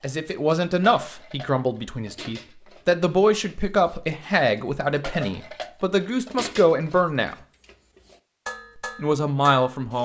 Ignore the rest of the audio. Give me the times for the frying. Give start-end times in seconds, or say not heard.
not heard.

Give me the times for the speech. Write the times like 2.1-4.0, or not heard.
0.0-7.3, 8.8-10.0.